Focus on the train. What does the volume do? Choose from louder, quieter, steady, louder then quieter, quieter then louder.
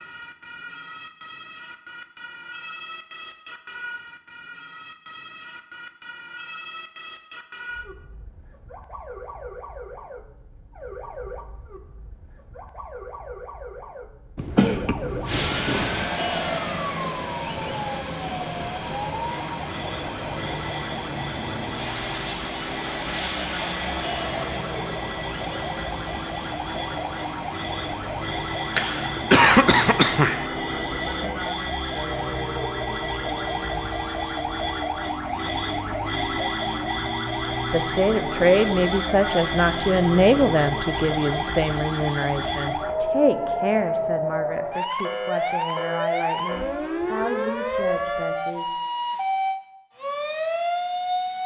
quieter.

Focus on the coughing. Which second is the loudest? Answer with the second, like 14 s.
29 s.